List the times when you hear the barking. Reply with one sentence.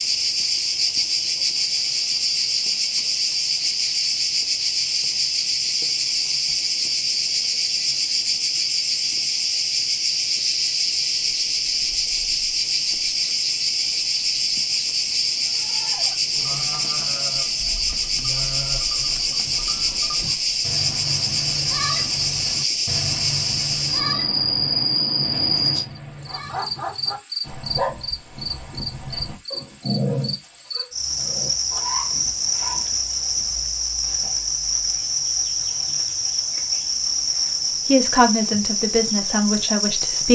The barking can be heard from 26.2 to 32.9 s.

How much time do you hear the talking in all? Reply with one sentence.
The talking can be heard for 2 seconds in total.